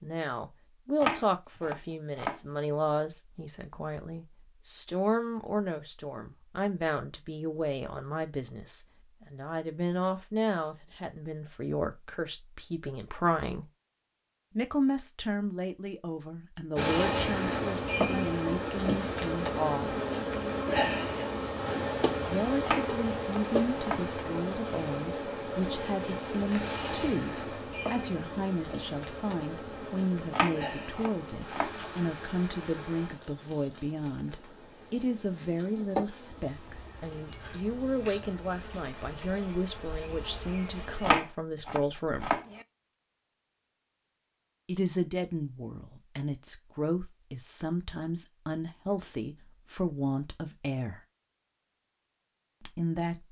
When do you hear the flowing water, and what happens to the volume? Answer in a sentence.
You can't hear the flowing water here.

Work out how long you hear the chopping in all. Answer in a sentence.
The chopping can be heard for 6 seconds in total.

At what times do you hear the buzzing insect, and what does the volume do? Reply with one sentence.
You can hear the buzzing insect from 16.8 to 41.2 s, getting quieter.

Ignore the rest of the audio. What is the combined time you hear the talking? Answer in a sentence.
The talking can be heard for 46 seconds in total.